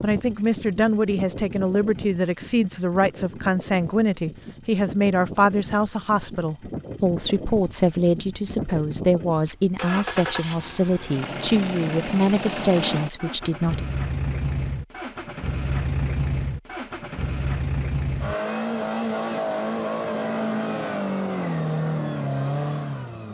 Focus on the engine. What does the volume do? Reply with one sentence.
The loudness of the engine goes up.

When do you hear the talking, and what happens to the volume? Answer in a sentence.
You can hear the talking from 0.0 to 13.8 s, at a steady volume.